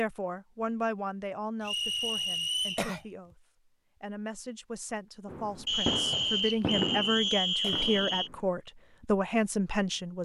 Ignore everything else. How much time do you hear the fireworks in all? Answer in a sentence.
You can hear the fireworks for 3 seconds altogether.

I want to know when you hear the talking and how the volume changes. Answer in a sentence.
You can hear the talking from 0.0 to 10.2 s, getting quieter then louder.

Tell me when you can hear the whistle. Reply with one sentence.
You can hear the whistle from 1.6 to 2.9 s and from 5.7 to 8.3 s.